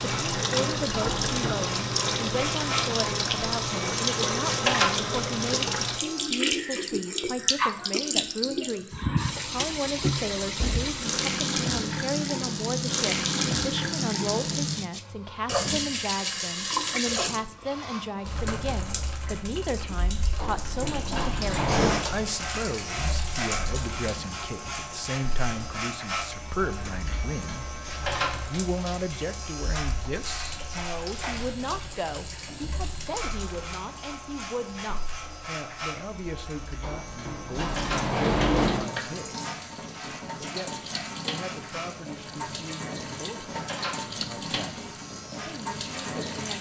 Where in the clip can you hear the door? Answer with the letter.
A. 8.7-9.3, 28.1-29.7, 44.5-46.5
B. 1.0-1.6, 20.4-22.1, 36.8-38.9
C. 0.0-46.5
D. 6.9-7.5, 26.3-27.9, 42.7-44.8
B.